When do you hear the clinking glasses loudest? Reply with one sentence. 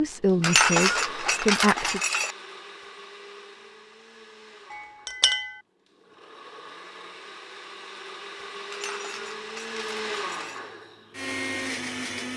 The loudest moment of the clinking glasses is at 1 second.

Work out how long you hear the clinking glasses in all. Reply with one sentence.
The clinking glasses can be heard for 5 seconds in total.